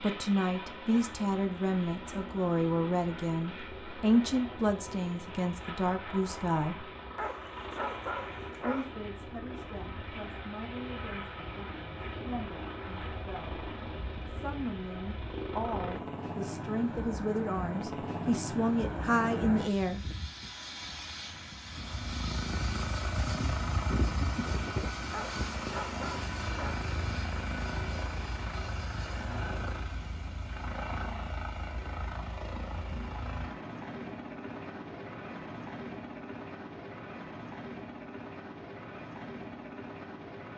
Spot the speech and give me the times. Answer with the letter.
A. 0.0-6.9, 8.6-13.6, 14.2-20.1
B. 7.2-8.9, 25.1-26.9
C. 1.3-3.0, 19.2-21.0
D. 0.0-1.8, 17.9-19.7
A.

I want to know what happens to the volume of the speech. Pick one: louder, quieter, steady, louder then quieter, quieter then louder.
quieter then louder.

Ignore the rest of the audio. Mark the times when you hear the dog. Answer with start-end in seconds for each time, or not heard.
7.2-8.9, 25.1-26.9.